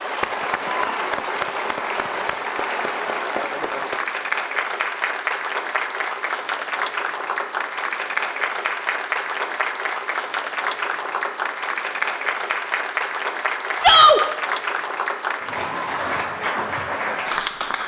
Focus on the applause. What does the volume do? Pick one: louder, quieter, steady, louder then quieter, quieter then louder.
steady.